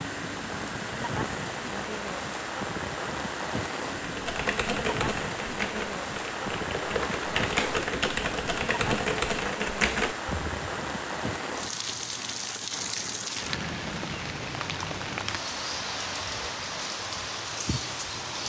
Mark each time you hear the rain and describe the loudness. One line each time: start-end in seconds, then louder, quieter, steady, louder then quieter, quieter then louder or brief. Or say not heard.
0.0-18.4 steady.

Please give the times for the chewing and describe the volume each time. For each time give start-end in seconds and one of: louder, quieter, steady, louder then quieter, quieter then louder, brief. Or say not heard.
not heard.